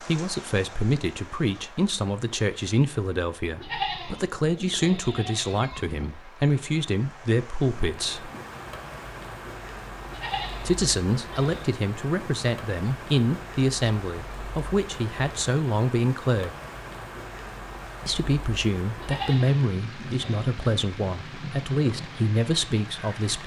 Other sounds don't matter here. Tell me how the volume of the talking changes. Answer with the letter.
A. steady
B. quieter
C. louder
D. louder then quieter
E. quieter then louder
A.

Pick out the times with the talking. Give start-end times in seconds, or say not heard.
0.0-8.3, 10.6-16.6, 18.1-23.4.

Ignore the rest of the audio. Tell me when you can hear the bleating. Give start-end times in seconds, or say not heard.
3.5-6.1, 10.1-11.7, 18.9-20.4.